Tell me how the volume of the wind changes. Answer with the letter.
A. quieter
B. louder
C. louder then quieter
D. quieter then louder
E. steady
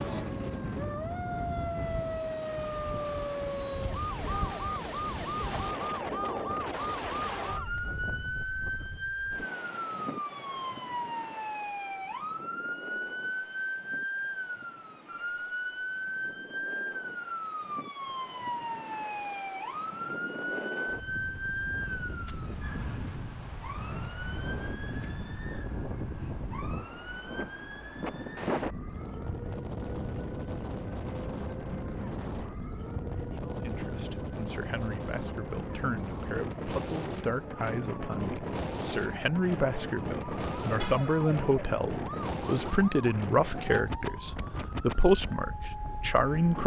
D.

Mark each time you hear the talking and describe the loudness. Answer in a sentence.
You can hear the talking from 33.4 to 46.6 s, getting louder.